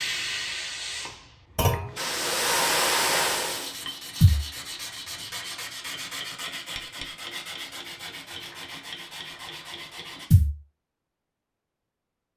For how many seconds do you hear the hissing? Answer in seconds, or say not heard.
4 s.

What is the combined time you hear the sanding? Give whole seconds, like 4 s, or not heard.
7 s.